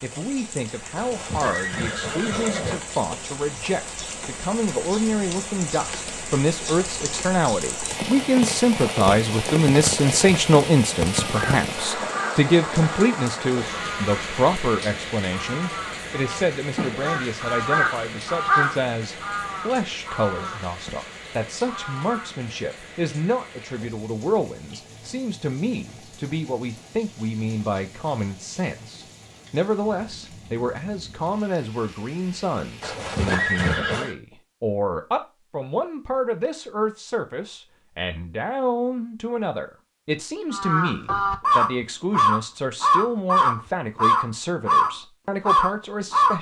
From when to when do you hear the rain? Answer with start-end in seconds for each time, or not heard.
0.0-33.0.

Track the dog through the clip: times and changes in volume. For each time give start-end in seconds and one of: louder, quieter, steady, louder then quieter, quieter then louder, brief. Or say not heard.
not heard.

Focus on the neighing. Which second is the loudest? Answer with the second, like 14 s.
34 s.